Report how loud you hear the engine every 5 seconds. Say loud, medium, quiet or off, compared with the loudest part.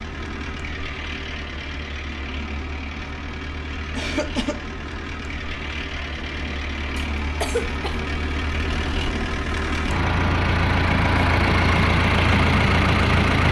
quiet, medium, loud.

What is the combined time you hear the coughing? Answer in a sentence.
You can hear the coughing for 2 seconds altogether.